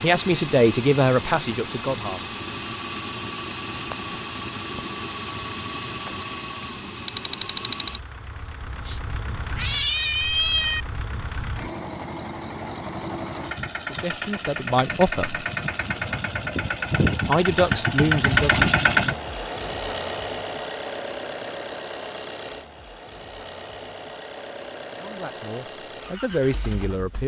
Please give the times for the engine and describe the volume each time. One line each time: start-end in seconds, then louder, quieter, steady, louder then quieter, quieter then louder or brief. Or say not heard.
0.0-27.2 louder then quieter.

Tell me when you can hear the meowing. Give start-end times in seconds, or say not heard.
8.8-10.8.